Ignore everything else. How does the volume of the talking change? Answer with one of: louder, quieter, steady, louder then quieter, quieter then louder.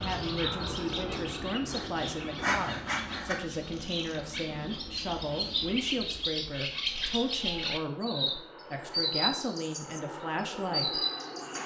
steady.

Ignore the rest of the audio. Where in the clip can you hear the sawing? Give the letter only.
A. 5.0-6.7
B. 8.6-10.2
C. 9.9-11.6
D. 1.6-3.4
D.